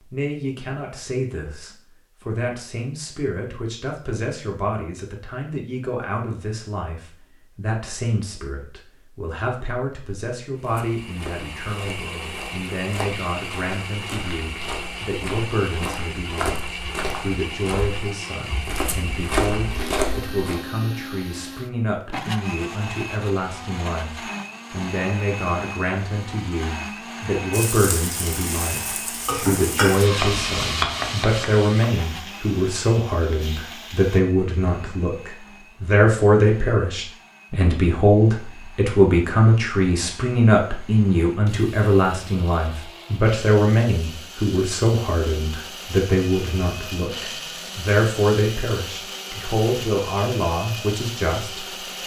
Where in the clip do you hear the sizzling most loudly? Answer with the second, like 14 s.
30 s.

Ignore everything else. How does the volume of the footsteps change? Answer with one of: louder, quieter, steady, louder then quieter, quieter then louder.
louder.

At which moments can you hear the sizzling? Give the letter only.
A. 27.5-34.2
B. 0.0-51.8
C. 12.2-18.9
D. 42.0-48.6
A.